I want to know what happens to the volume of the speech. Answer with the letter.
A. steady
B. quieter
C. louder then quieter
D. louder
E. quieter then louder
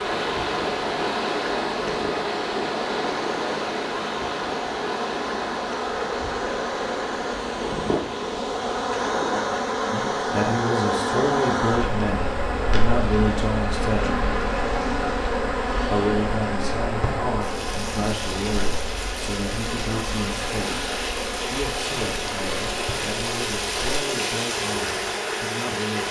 B.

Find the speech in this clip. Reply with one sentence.
You can hear the speech from 9.9 to 14.2 s and from 15.9 to 26.0 s.